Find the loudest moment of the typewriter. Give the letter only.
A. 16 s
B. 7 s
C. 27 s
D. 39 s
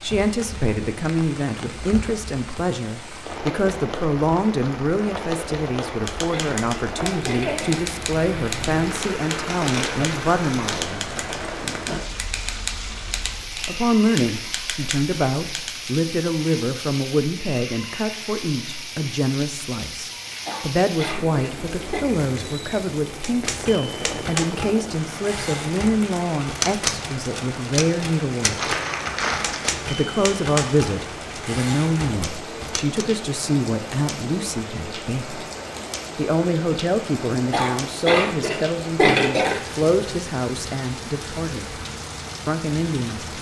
C.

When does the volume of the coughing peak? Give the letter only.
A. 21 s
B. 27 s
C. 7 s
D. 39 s
D.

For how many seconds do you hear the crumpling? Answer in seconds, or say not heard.
3 s.